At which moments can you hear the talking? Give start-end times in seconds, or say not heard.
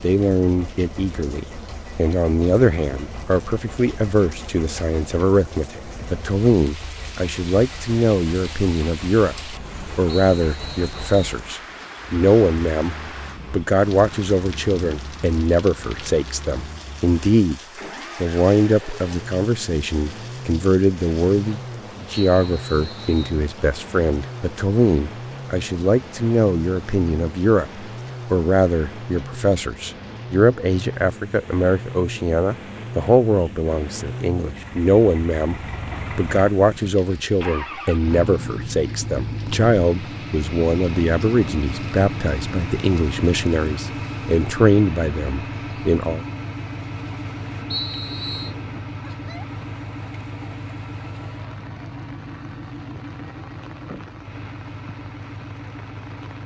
0.0-17.6, 18.2-35.5, 36.1-46.2.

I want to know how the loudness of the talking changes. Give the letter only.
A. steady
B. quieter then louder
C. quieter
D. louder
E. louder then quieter
A.